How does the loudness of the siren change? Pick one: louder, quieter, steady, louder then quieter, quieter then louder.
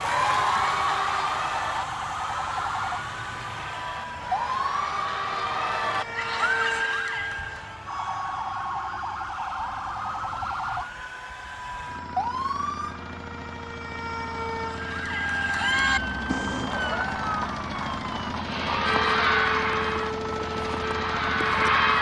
steady.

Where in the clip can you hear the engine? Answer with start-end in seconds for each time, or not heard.
0.0-21.9.